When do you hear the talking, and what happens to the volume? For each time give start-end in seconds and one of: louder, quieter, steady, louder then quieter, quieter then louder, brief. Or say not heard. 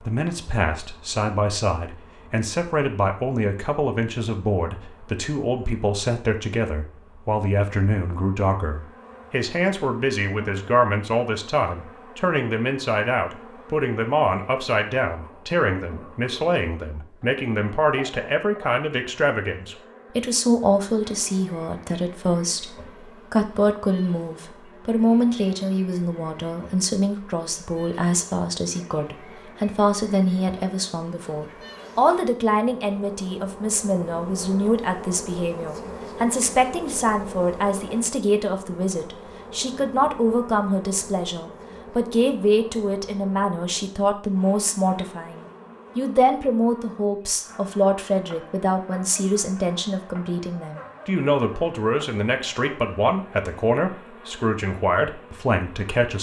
0.1-56.1 steady.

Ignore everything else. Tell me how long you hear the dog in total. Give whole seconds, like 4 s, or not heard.
not heard.